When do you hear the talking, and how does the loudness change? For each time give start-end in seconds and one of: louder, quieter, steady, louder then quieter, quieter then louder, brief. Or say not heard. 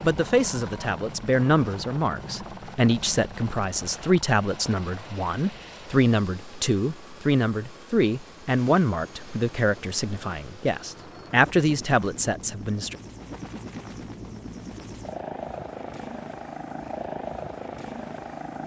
0.0-12.9 steady.